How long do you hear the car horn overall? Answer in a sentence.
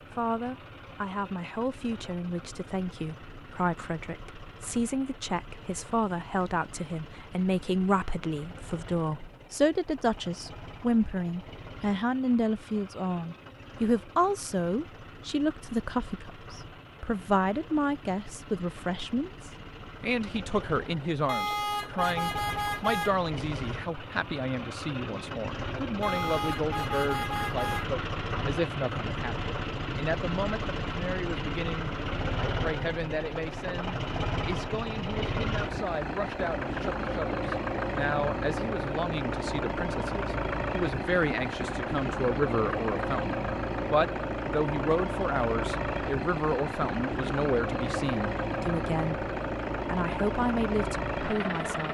You can hear the car horn for 4 seconds altogether.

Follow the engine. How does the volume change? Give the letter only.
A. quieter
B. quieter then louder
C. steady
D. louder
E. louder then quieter
D.